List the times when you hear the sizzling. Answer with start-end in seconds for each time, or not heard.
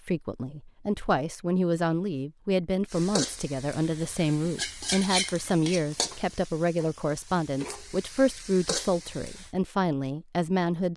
2.9-9.5.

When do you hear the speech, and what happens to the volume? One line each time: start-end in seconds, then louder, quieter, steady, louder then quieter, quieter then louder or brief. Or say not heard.
0.1-10.9 steady.